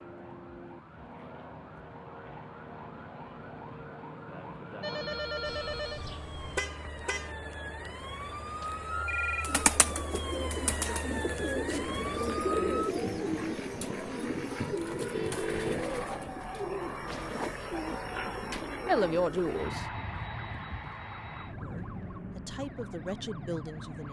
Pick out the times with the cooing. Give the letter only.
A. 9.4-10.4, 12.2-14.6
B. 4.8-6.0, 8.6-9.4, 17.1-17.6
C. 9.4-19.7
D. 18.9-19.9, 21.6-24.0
C.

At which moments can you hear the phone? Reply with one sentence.
The phone can be heard from 4.8 to 6.0 s, from 8.6 to 9.4 s and from 17.1 to 17.6 s.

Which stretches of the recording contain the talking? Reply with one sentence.
The talking can be heard from 18.9 to 19.9 s and from 21.6 to 24.0 s.